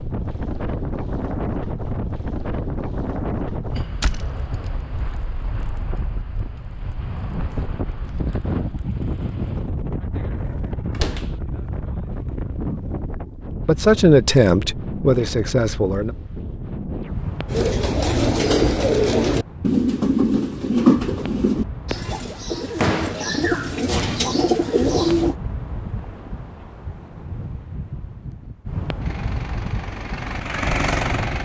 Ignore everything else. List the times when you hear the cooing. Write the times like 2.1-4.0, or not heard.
17.5-25.4.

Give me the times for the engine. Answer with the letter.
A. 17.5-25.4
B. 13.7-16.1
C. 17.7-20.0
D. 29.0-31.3
D.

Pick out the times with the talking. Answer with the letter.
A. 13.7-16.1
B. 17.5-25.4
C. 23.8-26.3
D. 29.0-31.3
A.